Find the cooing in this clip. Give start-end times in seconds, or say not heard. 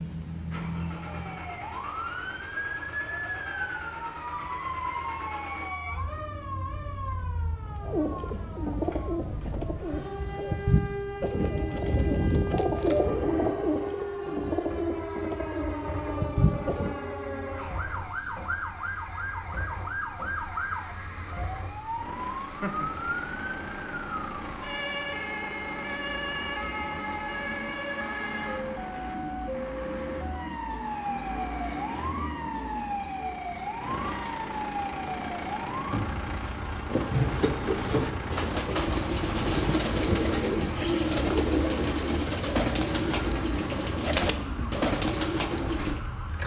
7.8-16.9, 36.9-46.0.